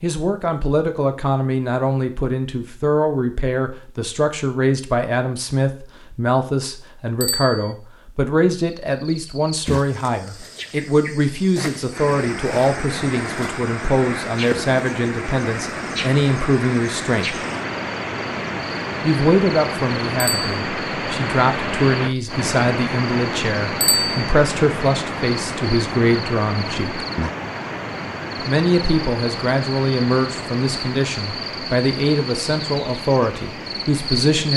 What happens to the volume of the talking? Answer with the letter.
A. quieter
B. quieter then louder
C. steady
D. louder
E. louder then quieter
C.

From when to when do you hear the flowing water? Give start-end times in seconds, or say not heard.
11.9-34.5.